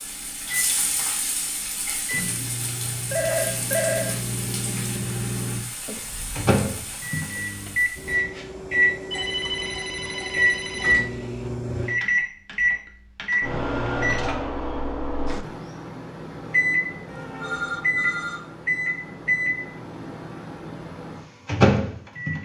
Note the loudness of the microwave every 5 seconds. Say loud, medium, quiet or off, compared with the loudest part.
medium, loud, loud, loud, loud.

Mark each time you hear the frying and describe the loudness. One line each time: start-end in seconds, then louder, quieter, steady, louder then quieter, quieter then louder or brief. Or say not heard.
0.0-8.2 quieter.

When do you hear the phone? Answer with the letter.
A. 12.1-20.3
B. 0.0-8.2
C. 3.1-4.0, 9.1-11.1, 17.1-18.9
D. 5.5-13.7
C.